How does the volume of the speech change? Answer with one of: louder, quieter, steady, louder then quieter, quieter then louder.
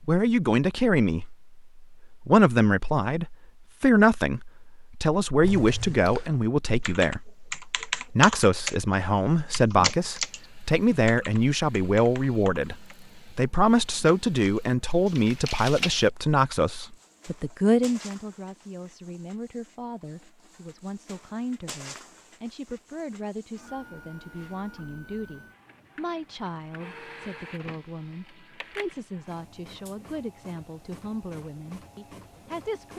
quieter.